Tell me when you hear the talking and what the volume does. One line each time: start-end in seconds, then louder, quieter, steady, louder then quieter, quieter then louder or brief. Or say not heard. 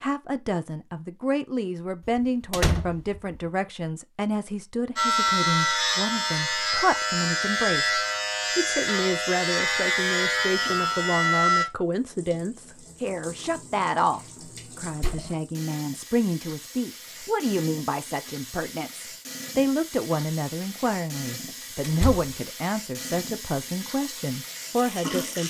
0.0-25.4 steady.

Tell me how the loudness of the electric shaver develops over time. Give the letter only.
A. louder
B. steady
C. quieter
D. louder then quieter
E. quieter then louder
B.